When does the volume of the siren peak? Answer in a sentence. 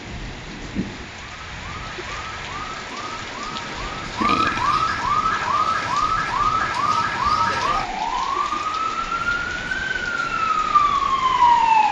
The volume of the siren peaks at 11 seconds.